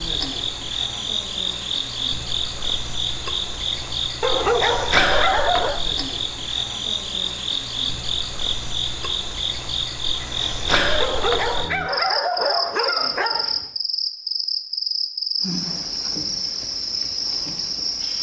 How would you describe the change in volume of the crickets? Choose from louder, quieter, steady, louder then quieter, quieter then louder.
steady.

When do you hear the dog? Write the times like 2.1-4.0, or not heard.
4.2-5.8, 11.0-13.7.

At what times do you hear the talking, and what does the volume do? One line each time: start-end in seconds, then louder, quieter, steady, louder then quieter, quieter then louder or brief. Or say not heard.
not heard.